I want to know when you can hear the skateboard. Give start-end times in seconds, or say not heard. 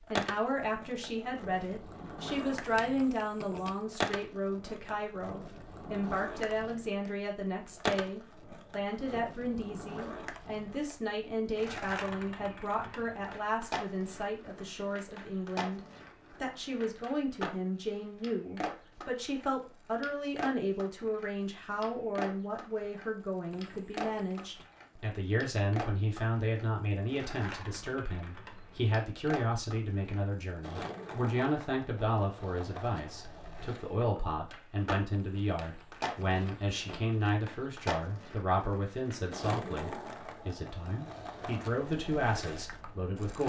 0.1-43.4.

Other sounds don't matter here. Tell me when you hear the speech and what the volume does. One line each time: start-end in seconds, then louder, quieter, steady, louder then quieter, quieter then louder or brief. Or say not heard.
0.1-43.4 steady.